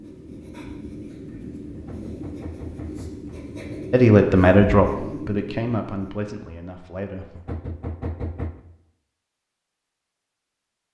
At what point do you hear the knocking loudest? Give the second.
8 s.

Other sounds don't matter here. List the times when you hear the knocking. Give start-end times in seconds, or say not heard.
1.7-3.4, 7.3-8.6.